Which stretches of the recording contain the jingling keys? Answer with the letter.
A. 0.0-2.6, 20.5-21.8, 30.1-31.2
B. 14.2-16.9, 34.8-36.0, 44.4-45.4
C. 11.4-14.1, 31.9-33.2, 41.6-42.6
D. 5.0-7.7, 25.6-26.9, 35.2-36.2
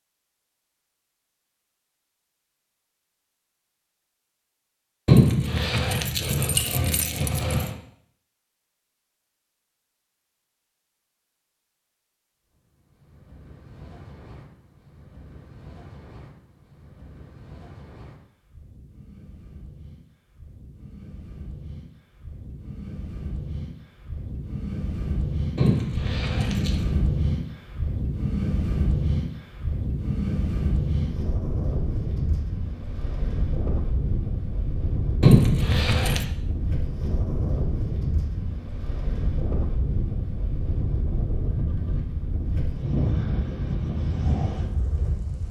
D.